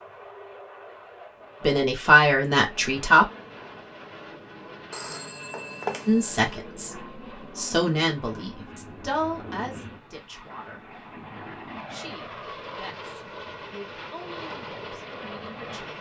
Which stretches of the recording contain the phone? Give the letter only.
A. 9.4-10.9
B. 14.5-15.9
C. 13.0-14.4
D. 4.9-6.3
D.